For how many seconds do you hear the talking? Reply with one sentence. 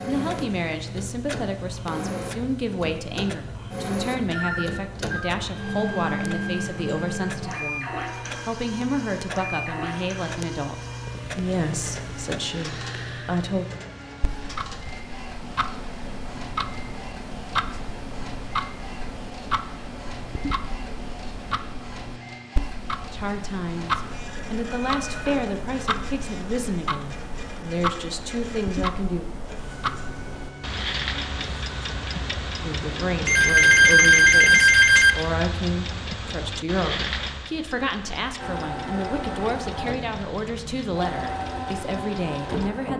The talking can be heard for 30 seconds in total.